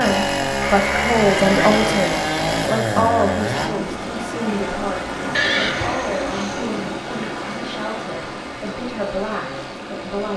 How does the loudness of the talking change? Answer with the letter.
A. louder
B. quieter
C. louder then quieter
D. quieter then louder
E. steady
B.